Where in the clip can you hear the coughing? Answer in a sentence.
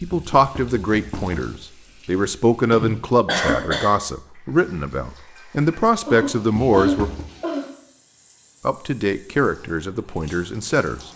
You can hear the coughing from 2.7 to 3.9 s and from 6.0 to 7.7 s.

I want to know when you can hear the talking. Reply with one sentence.
The talking can be heard from 0.0 to 7.1 s and from 8.7 to 11.0 s.